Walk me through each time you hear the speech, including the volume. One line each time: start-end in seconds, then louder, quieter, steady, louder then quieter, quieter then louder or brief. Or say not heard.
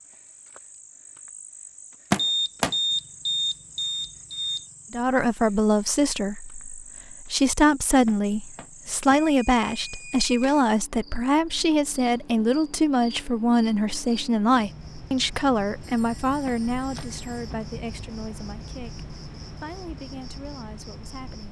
4.9-21.4 quieter.